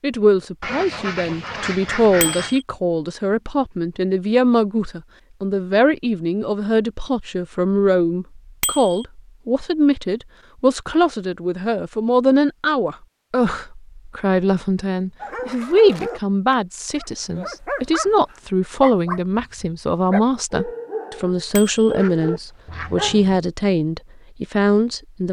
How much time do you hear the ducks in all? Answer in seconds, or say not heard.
3 s.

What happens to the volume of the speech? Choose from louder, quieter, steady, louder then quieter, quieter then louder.
steady.